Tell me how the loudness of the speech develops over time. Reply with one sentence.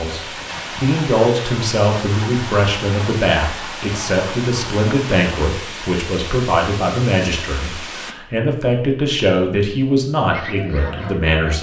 The loudness of the speech stays about the same.